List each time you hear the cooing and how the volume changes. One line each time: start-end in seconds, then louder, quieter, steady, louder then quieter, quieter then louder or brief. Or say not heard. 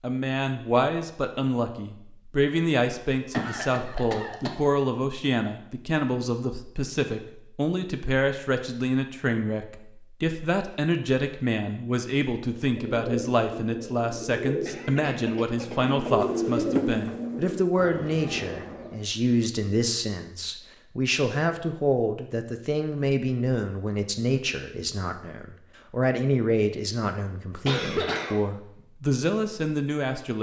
12.7-19.0 louder then quieter.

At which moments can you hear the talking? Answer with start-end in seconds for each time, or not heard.
0.0-30.3.